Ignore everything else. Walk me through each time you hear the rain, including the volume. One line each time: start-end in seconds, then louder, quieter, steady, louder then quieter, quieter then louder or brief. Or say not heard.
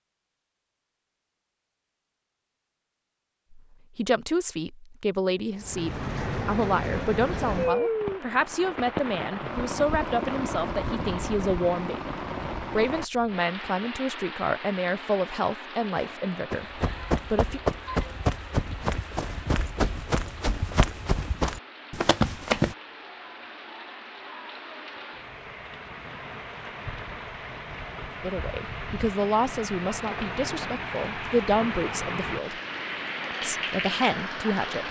5.5-34.8 quieter then louder.